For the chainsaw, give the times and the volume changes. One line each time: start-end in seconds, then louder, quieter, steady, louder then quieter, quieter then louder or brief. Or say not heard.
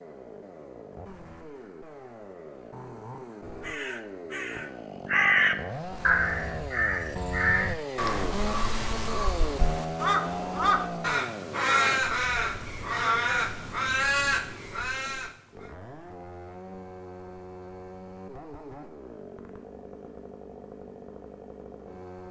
0.0-22.2 louder then quieter.